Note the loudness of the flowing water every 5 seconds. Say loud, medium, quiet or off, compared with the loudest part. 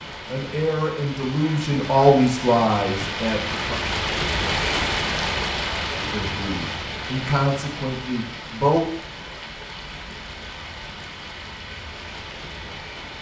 loud, loud, medium.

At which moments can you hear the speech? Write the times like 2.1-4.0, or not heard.
0.2-3.8, 6.0-8.8.